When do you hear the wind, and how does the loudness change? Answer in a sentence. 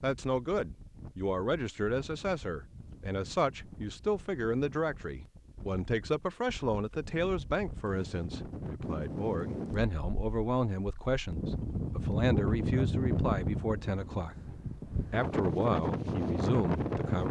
The wind can be heard from 0.0 to 17.2 s, getting louder.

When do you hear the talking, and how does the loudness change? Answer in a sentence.
You can hear the talking from 0.0 to 17.2 s, at a steady volume.